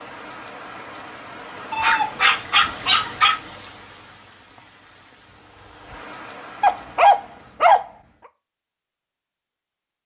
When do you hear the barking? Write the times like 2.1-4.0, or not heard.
1.7-3.4, 6.6-7.8.